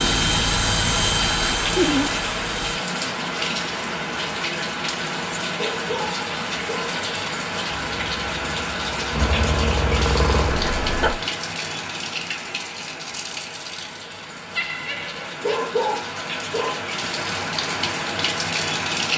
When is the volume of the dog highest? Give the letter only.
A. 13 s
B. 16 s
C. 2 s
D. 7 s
B.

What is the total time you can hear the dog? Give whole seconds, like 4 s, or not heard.
3 s.